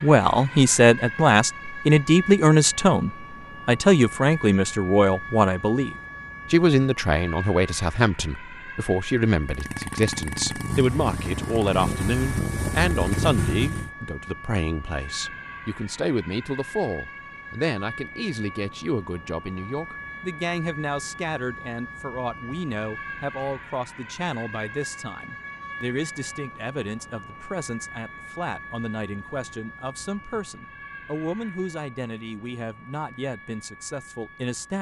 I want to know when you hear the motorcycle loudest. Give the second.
13 s.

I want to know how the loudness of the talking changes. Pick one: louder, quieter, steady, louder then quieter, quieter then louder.
quieter.